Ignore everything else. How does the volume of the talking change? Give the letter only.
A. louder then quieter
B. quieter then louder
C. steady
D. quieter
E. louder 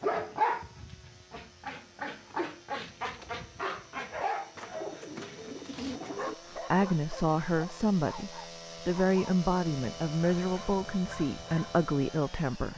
C.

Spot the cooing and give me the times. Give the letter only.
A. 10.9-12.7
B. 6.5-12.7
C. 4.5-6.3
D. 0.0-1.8
C.